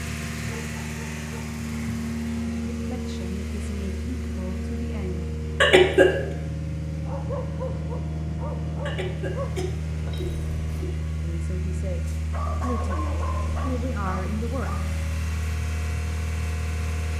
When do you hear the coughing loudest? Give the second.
6 s.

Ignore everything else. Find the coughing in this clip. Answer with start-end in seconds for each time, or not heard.
5.6-6.2, 8.8-10.8.